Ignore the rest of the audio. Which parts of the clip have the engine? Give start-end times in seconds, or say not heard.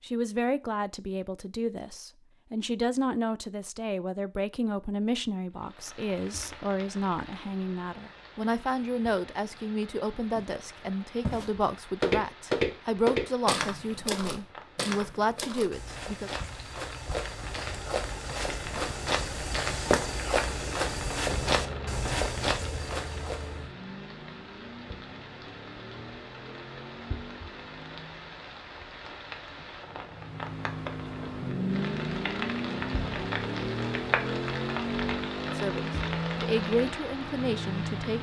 17.2-28.4, 30.1-38.1.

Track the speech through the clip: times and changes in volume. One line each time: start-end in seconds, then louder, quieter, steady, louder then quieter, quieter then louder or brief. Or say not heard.
0.0-16.3 steady
35.5-38.1 brief.